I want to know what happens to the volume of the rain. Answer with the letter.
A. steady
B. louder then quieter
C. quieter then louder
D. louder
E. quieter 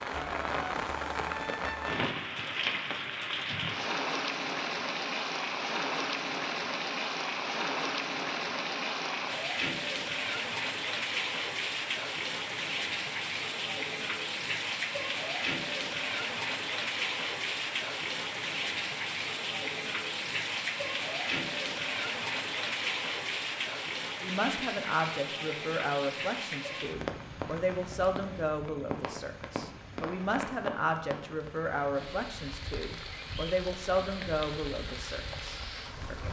E.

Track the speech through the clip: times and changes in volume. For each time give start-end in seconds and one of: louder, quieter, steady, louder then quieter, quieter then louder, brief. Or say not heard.
24.2-36.2 steady.